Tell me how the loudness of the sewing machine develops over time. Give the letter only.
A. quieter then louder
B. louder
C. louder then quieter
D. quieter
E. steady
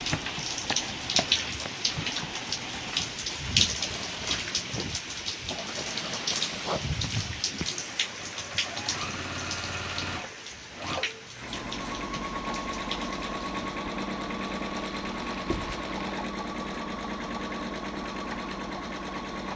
B.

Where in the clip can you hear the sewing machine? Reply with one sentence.
You can hear the sewing machine from 0.0 to 19.5 s.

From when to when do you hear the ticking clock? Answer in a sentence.
The ticking clock can't be heard in this clip.